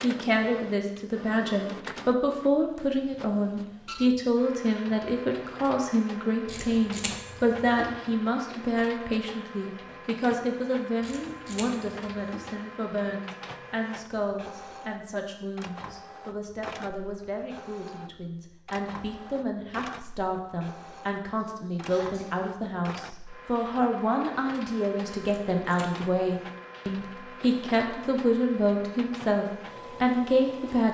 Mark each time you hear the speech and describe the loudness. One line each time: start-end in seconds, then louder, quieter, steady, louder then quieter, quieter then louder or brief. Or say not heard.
0.0-30.8 quieter then louder.